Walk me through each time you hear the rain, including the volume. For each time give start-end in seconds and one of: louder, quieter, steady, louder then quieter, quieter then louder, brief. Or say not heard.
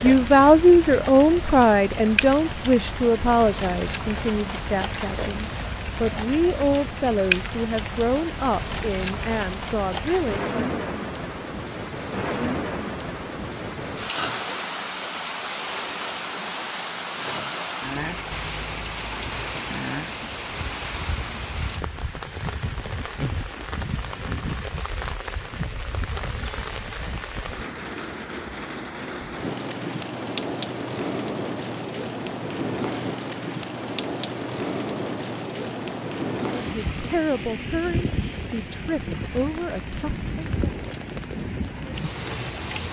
0.0-42.8 steady.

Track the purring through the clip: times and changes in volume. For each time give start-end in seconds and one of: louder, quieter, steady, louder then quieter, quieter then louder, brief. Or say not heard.
not heard.